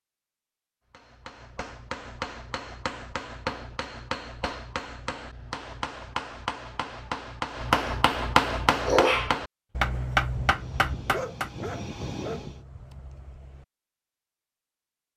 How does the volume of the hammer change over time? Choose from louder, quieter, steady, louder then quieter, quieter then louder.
louder.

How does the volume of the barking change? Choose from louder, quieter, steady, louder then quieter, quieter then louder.
quieter.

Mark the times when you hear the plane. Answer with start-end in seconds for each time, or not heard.
10.2-12.6.